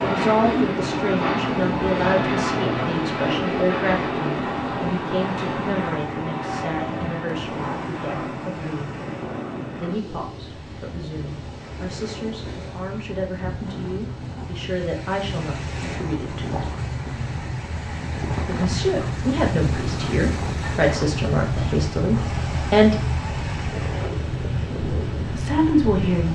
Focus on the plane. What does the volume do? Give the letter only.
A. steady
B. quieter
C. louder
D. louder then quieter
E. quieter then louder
E.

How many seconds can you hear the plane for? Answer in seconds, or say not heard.
26 s.